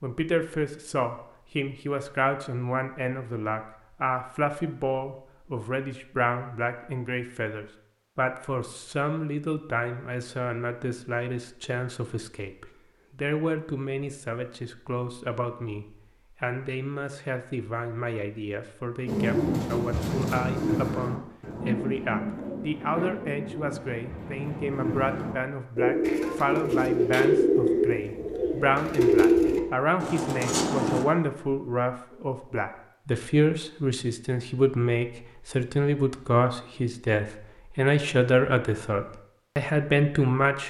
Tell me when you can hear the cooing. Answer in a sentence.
You can hear the cooing from 19.1 to 31.1 s.